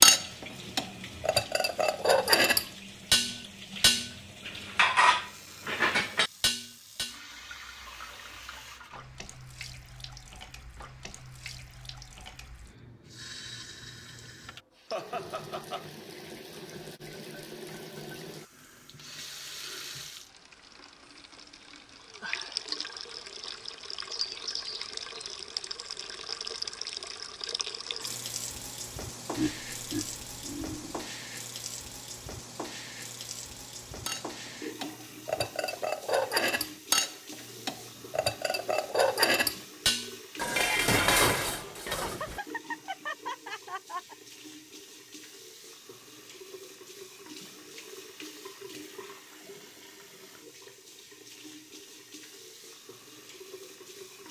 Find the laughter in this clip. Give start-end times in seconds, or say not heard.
14.9-15.8, 29.4-31.0, 42.0-44.1.